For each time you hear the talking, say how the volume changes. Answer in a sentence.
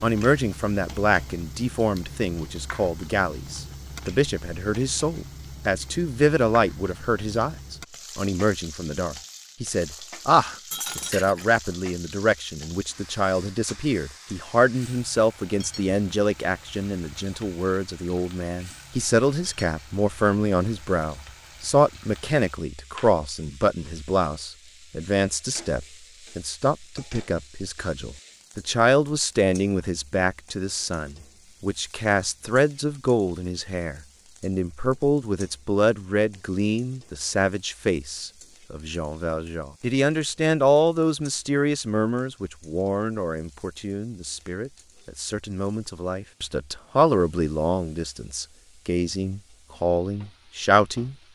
The talking can be heard from 0.0 to 51.1 s, at a steady volume.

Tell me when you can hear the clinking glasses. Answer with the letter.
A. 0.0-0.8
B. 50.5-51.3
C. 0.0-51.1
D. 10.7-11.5
D.